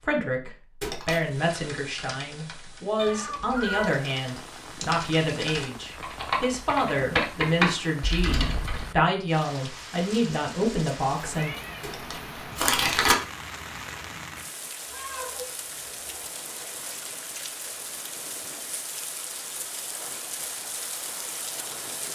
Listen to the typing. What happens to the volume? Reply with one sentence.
The volume of the typing goes up.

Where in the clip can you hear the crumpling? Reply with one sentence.
The crumpling can be heard from 0.8 to 1.4 s and from 11.8 to 13.2 s.